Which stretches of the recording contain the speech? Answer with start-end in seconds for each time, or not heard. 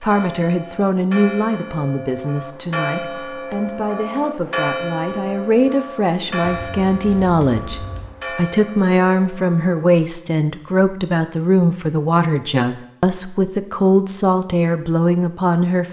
0.0-15.8.